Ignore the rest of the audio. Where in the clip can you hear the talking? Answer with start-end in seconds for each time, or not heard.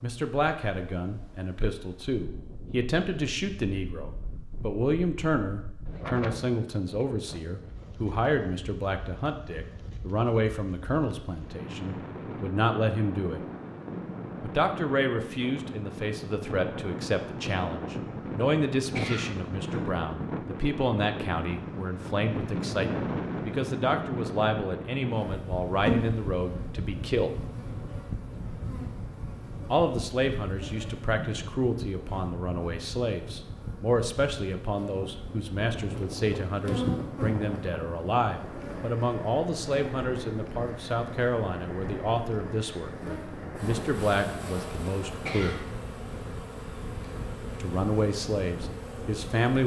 0.0-13.4, 14.4-27.4, 29.7-45.6, 47.6-49.6.